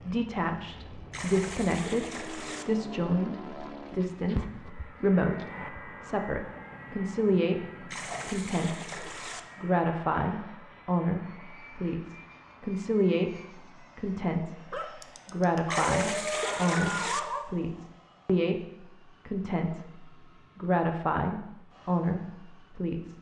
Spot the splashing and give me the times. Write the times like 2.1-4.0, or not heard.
1.1-2.6, 7.9-9.4, 15.7-17.2.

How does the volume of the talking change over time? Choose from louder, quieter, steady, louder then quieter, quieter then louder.
steady.